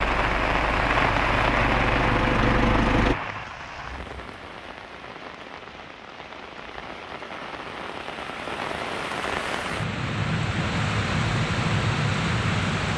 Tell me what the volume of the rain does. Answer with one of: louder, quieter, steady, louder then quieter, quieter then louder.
quieter then louder.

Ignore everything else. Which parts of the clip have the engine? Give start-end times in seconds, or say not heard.
0.0-3.1.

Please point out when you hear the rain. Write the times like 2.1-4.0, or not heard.
0.0-12.9.